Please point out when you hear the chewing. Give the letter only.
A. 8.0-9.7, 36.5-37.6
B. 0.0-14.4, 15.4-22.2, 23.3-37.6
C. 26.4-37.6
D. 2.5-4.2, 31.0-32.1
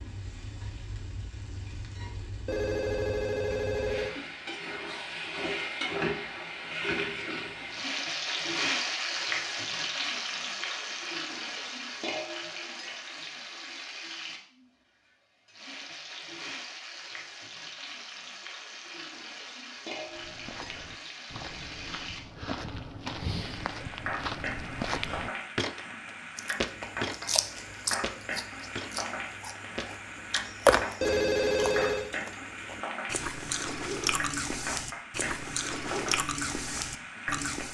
C.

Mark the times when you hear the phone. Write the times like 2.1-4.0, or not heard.
2.5-4.2, 31.0-32.1.